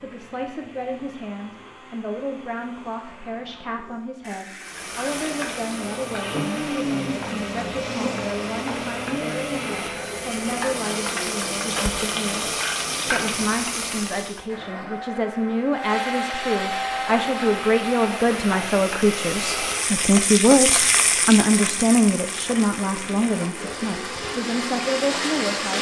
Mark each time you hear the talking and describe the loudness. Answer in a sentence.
You can hear the talking from 0.0 to 25.7 s, getting louder.